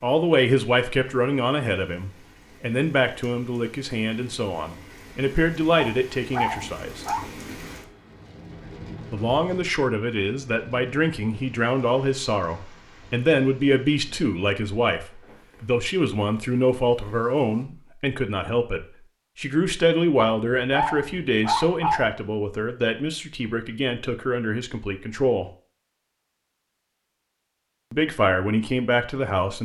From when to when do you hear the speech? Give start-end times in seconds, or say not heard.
0.0-7.0, 9.1-25.4, 27.9-29.5.